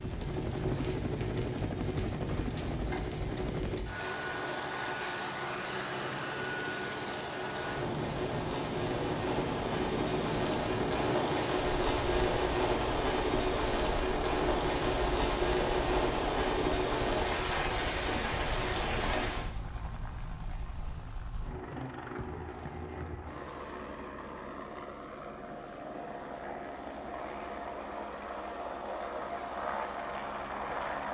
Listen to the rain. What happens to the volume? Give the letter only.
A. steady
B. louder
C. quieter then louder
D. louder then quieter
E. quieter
B.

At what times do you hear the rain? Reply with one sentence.
You can hear the rain from 0.0 to 19.5 s.